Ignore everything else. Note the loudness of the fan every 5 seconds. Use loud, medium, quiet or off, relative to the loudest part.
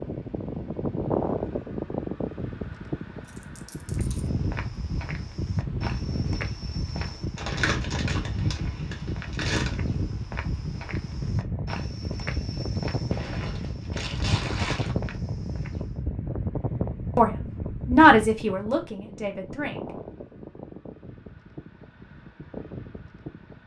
loud, loud, loud, loud, medium.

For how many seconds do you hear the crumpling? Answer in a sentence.
You can hear the crumpling for 4 seconds altogether.